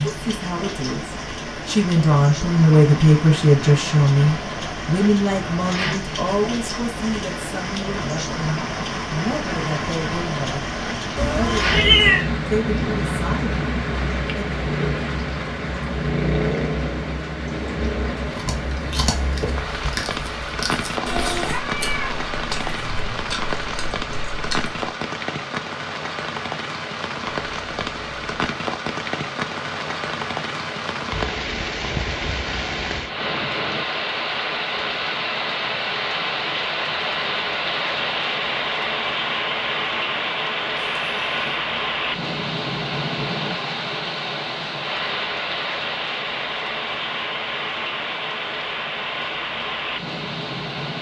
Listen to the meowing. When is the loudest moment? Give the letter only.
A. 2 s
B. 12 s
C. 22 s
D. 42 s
B.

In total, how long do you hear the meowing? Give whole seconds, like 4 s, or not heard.
4 s.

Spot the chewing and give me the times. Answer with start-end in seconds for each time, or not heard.
18.1-24.8.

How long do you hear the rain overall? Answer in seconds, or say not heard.
51 s.